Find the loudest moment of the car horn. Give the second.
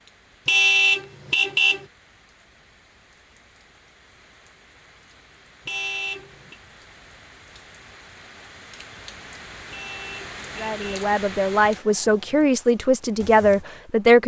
1 s.